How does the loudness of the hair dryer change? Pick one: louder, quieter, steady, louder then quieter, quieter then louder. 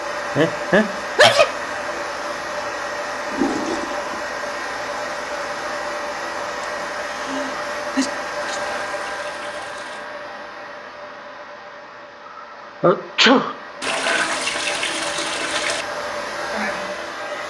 quieter then louder.